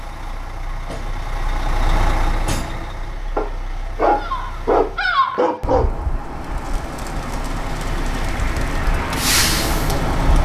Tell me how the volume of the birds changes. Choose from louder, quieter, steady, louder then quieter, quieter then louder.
quieter then louder.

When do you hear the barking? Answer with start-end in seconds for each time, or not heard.
3.4-5.9.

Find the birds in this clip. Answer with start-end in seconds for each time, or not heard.
4.2-10.4.